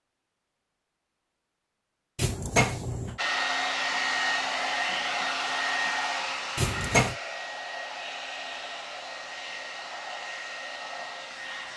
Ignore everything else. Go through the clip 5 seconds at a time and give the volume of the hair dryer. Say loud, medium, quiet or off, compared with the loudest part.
loud, medium, medium.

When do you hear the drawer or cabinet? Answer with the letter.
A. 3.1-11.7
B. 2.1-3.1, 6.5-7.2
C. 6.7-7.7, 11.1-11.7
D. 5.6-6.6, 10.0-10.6
B.